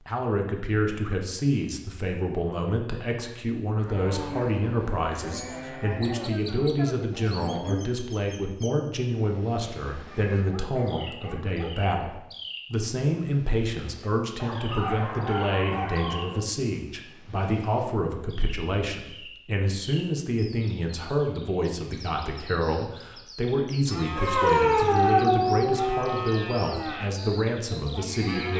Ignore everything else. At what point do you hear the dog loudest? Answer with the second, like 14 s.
25 s.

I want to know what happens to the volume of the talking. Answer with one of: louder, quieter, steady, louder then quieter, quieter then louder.
steady.